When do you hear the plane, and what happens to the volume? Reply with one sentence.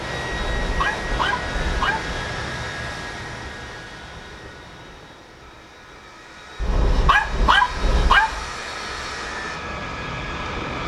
You can hear the plane from 0.0 to 10.8 s, getting quieter then louder.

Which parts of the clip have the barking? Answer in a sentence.
You can hear the barking from 0.4 to 2.1 s and from 6.6 to 8.4 s.